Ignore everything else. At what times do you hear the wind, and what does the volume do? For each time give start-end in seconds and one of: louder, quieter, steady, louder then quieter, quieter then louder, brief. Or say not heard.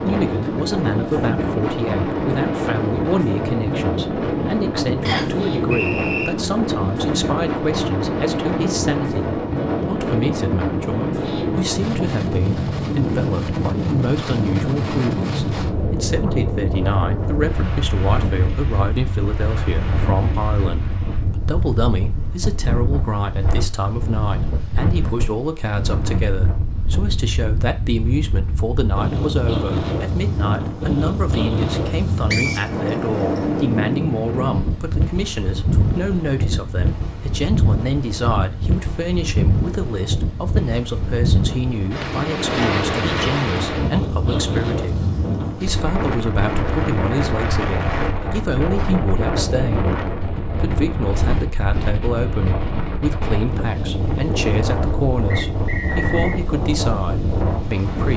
0.0-58.1 steady.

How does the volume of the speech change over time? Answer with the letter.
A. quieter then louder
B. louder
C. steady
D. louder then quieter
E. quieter
C.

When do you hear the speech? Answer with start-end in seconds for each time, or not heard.
0.0-58.1.